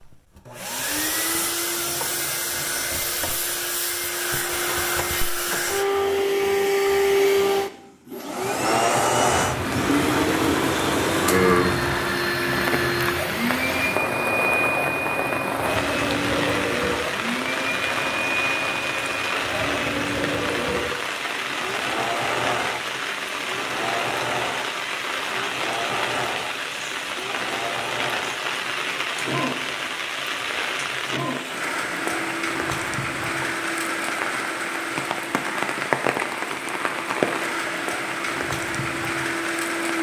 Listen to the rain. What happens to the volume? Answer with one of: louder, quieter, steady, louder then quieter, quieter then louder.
steady.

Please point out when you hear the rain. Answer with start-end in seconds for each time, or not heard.
9.2-39.9.